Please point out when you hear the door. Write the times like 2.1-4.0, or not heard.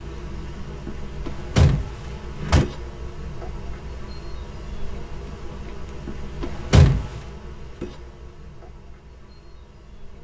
1.2-2.6, 6.4-7.2.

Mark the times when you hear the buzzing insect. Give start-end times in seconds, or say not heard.
0.0-10.1.